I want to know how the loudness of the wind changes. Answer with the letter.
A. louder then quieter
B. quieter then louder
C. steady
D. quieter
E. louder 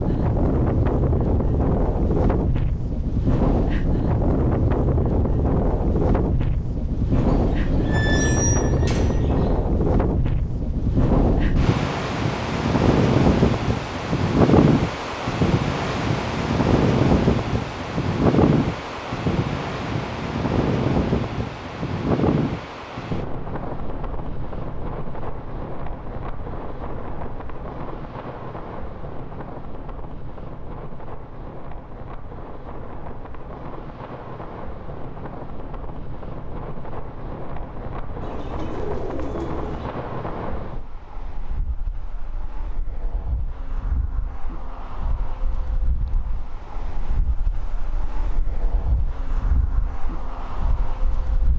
D.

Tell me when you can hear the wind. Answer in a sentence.
You can hear the wind from 0.0 to 51.5 s.